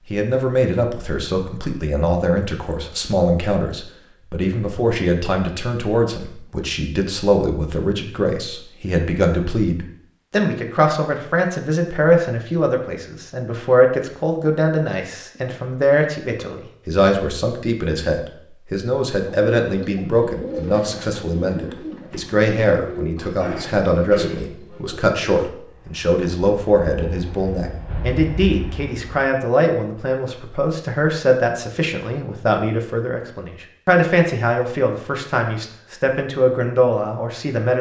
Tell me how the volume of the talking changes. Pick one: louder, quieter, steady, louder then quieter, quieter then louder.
steady.